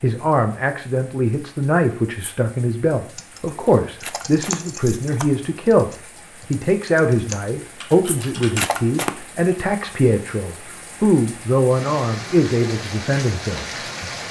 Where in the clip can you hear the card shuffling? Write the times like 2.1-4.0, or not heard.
3.4-5.2, 7.9-9.2.